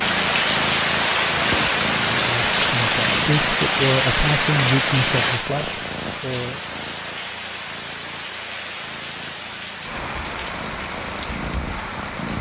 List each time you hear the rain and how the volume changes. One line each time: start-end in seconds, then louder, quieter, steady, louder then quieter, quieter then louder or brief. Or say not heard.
0.0-12.3 quieter.